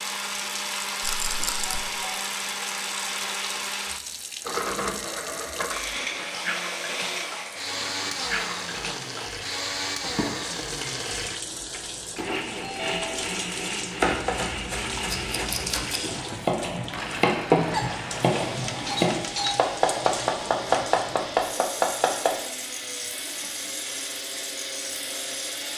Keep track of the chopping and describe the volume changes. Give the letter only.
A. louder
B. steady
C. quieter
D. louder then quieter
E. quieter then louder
A.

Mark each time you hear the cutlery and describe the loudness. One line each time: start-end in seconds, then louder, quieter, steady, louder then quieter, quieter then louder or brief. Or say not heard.
not heard.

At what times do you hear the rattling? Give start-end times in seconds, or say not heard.
1.0-1.8, 15.1-16.1.